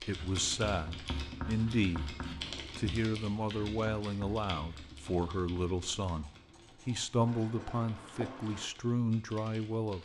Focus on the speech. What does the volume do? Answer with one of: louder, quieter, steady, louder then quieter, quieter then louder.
steady.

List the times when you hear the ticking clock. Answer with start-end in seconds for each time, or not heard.
not heard.